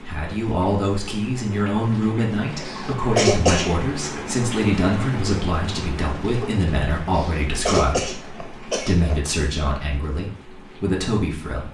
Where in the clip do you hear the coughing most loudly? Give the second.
3 s.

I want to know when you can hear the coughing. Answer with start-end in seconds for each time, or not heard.
2.6-3.7, 7.2-9.2.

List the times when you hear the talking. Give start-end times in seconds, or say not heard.
0.0-11.6.